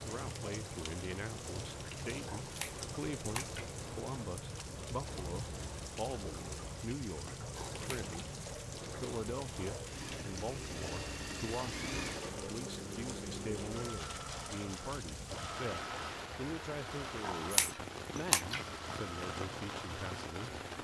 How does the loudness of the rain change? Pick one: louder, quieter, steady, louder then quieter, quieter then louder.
steady.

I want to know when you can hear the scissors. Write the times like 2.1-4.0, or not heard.
2.2-3.6, 7.5-8.1, 17.2-18.6.